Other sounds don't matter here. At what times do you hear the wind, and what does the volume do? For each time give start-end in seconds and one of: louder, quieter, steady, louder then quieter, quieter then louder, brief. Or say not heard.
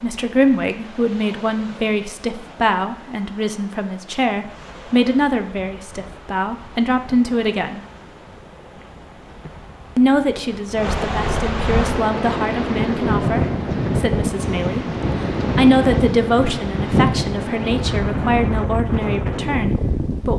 0.0-20.3 louder.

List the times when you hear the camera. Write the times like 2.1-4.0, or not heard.
not heard.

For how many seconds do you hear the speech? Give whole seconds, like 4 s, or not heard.
18 s.